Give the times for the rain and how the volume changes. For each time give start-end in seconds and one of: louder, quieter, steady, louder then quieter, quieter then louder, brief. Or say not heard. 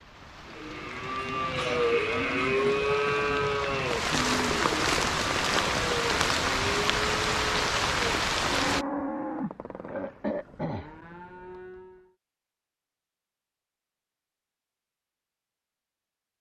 0.0-8.8 louder.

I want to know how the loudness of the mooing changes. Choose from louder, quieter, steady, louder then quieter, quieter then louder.
quieter.